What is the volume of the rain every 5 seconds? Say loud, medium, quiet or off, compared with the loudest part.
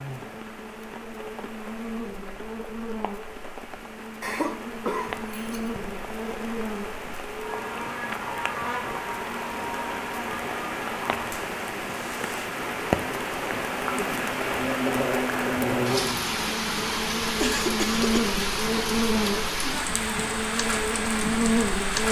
quiet, medium, loud, loud, loud.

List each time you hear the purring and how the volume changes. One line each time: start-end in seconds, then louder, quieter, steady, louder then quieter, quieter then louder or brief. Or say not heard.
not heard.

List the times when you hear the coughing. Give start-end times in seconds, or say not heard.
4.2-5.8, 17.4-18.4.